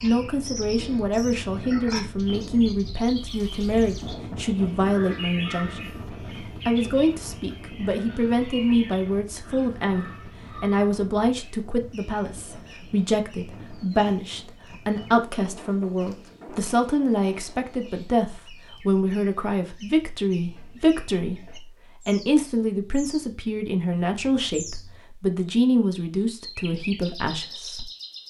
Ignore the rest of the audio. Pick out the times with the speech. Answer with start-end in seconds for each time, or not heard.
0.0-28.2.